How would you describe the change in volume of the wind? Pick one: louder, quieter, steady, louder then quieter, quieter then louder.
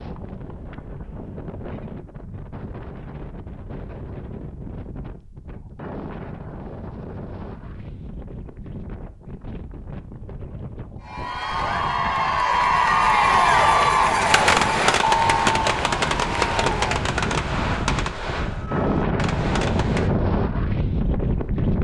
louder.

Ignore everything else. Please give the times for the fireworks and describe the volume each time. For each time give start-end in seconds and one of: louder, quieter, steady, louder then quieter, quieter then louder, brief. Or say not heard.
14.2-20.1 quieter.